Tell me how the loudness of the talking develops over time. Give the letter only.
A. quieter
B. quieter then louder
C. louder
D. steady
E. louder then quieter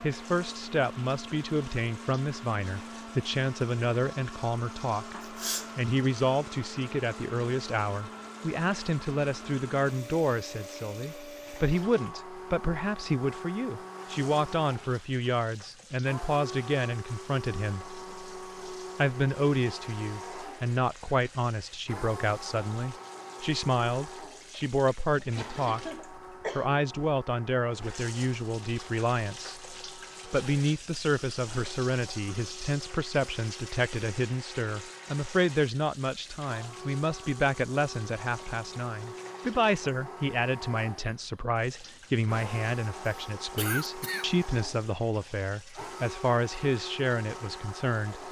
D.